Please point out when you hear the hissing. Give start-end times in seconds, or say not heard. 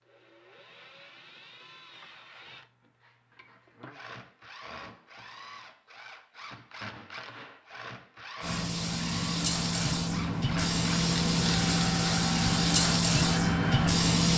8.4-14.3.